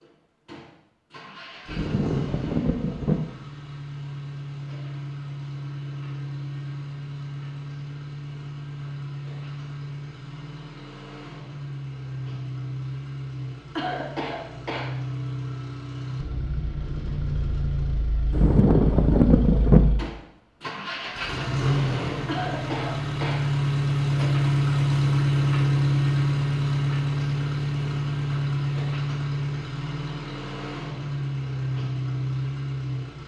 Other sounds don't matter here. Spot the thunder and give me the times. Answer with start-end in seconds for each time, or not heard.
1.6-3.2, 18.3-19.9.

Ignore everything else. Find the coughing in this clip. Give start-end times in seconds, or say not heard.
13.8-14.9, 22.2-23.4.